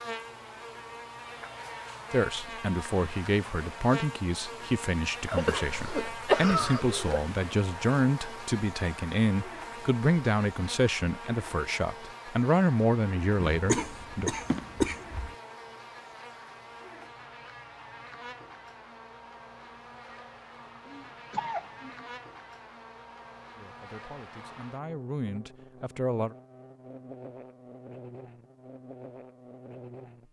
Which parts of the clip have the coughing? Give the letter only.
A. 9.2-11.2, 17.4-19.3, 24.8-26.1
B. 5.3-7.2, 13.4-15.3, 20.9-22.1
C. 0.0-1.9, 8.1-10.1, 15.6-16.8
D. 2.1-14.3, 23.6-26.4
B.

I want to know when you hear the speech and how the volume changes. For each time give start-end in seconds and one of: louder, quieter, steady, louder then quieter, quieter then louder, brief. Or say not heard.
2.1-14.3 steady
23.6-26.4 brief.